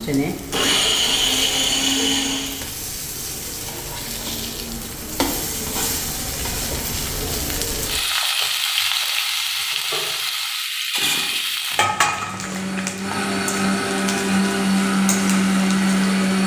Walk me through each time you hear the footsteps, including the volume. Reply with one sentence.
You can't hear the footsteps here.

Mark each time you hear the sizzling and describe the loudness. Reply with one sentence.
The sizzling can be heard from 0.0 to 16.4 s, getting louder then quieter.